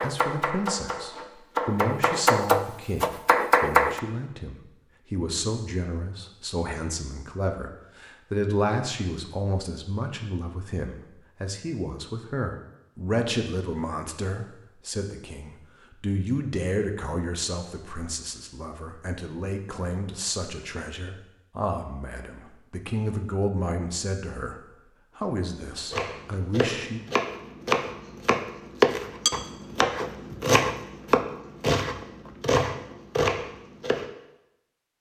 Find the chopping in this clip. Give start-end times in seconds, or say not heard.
0.0-4.0, 25.9-34.1.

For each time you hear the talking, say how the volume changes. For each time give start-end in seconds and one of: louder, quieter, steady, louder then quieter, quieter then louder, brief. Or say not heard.
0.0-24.6 steady
25.1-27.0 brief.